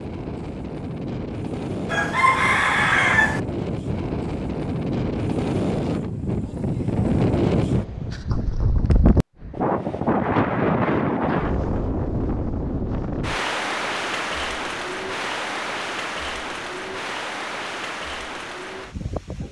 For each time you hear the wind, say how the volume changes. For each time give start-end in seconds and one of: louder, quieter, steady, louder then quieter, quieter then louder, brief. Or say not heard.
0.0-19.4 louder then quieter.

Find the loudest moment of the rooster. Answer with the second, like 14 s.
3 s.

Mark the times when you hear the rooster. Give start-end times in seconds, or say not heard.
1.9-3.4.